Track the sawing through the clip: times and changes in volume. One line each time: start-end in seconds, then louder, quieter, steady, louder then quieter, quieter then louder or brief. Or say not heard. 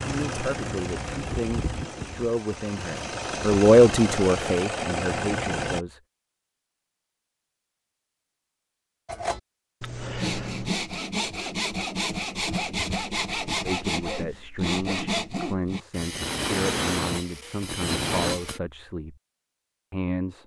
9.1-18.6 steady.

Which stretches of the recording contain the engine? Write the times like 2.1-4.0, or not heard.
0.0-5.8.